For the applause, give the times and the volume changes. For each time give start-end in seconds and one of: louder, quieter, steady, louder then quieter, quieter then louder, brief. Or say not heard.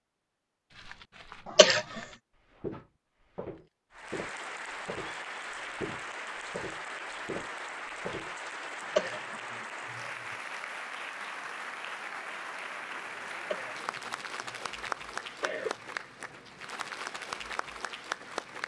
3.9-18.6 steady.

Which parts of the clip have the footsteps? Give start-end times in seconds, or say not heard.
0.7-8.4.